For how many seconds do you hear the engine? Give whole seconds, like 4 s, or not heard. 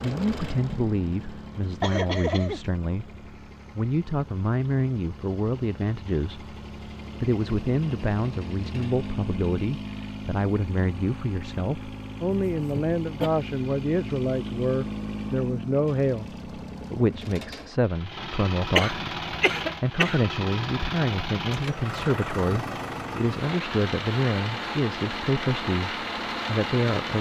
27 s.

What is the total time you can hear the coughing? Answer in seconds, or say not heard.
3 s.